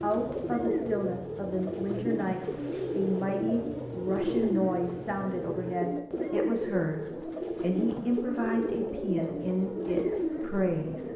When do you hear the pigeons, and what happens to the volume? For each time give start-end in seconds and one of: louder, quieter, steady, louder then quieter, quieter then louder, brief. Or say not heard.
0.0-11.1 steady.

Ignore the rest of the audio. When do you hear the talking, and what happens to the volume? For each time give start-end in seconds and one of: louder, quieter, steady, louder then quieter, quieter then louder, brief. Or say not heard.
0.0-11.1 steady.